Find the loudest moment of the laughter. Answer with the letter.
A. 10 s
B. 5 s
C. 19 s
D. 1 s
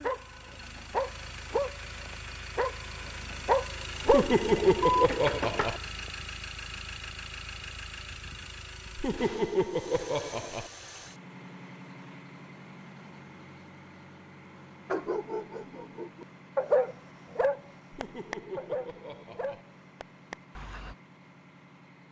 B.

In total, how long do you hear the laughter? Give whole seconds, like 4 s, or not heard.
5 s.